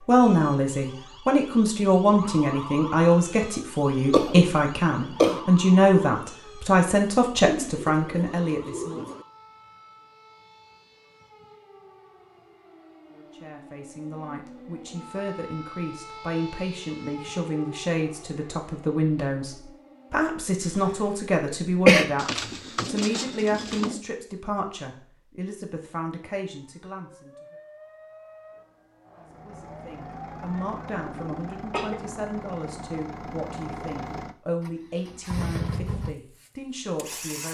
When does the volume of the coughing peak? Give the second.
22 s.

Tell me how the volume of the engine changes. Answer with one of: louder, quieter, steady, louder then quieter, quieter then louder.
louder.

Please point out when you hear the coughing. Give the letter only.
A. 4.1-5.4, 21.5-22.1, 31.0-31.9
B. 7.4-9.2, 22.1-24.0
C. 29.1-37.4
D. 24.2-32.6
A.